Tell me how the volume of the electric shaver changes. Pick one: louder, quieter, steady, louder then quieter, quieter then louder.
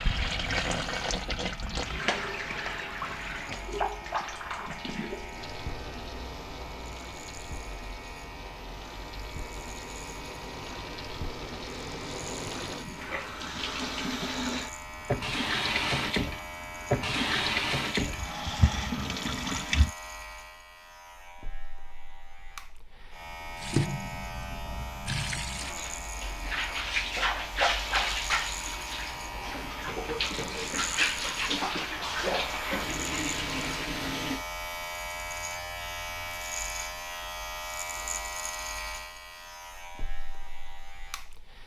louder.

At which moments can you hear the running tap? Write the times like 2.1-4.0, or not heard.
0.0-19.9, 23.6-34.5.